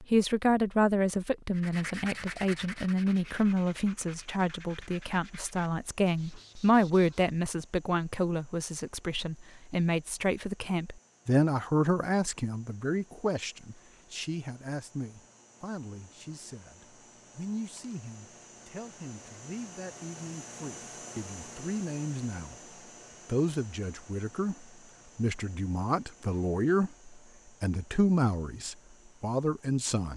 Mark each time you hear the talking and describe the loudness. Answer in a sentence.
The talking can be heard from 0.0 to 30.1 s, getting quieter then louder.